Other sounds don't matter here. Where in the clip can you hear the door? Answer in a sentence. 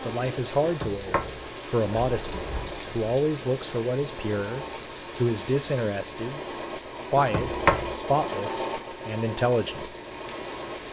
The door can be heard from 0.6 to 2.9 s and from 7.2 to 8.0 s.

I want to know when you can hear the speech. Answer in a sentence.
You can hear the speech from 0.0 to 6.4 s and from 7.1 to 9.9 s.